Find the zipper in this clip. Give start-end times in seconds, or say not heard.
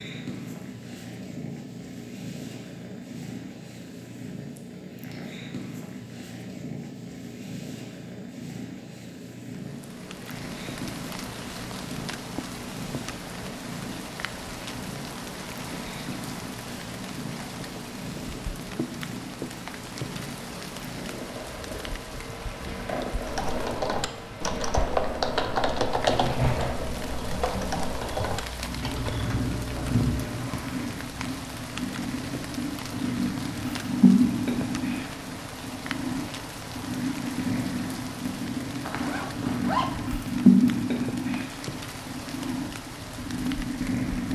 38.8-40.0.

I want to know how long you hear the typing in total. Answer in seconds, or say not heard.
7 s.